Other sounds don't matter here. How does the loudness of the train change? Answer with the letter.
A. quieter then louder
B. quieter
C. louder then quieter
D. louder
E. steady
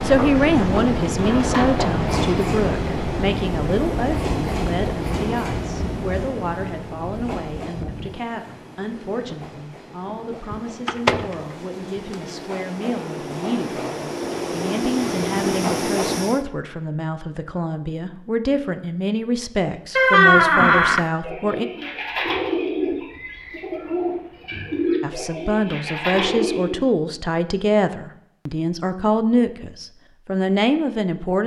A.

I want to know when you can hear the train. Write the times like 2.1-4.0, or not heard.
0.0-16.4.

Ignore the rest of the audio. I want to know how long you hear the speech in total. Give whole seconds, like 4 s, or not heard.
28 s.